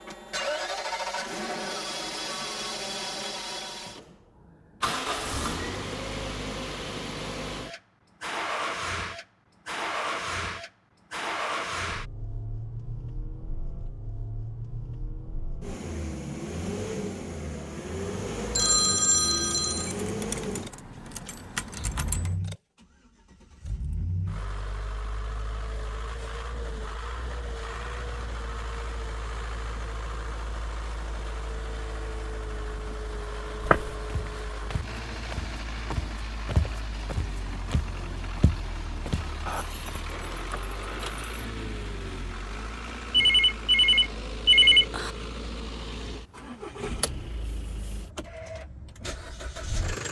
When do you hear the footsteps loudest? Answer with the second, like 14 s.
34 s.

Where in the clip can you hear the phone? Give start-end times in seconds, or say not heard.
18.6-19.9, 43.1-45.1.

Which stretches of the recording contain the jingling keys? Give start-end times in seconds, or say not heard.
20.0-22.4, 39.5-41.5.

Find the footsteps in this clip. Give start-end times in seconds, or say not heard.
33.6-39.3.